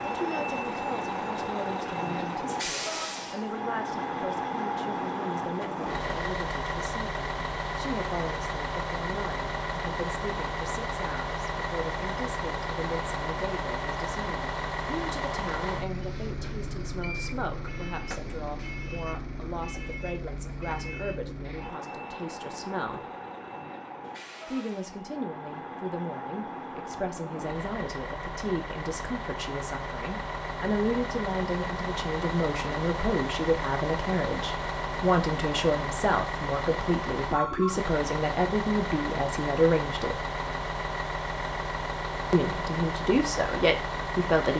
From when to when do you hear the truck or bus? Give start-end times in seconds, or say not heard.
0.0-44.5.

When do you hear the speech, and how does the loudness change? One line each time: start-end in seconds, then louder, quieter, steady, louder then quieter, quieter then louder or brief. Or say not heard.
0.0-23.1 steady
24.4-40.2 louder
42.3-44.5 brief.